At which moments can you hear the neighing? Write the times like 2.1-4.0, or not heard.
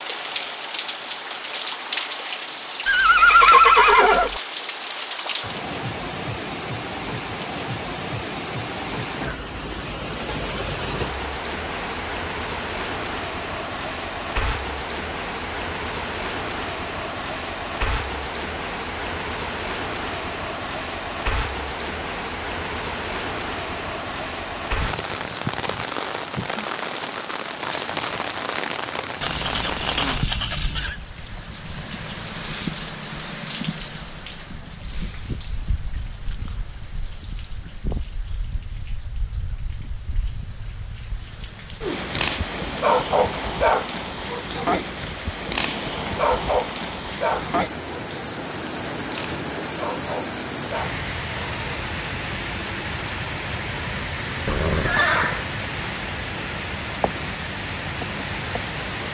2.9-4.4, 29.2-30.9, 54.5-55.5.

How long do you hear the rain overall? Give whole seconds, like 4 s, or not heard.
59 s.